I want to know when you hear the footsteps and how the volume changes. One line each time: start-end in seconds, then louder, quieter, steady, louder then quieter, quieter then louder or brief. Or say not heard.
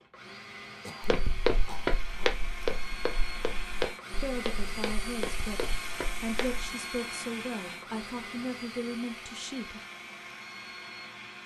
1.0-6.7 quieter.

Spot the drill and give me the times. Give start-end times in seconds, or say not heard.
0.0-11.4.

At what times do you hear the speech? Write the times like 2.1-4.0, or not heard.
4.2-9.8.